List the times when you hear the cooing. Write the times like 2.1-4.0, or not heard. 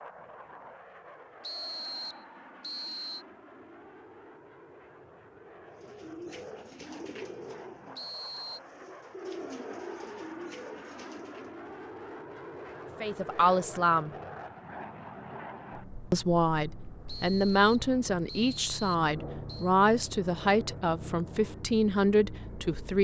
5.7-11.6.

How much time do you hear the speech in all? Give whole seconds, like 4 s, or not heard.
8 s.